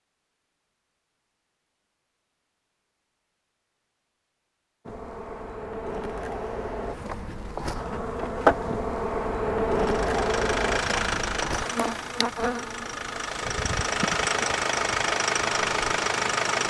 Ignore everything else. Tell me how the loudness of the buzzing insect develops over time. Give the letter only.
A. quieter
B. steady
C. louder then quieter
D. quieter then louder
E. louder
C.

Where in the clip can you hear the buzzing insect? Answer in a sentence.
The buzzing insect can be heard from 4.8 to 16.6 s.